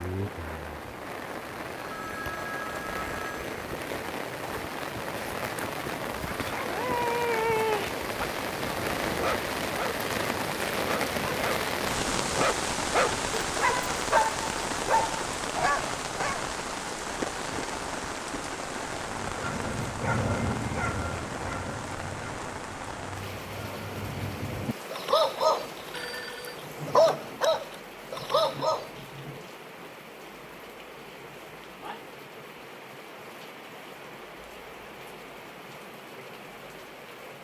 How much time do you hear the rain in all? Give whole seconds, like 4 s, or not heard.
37 s.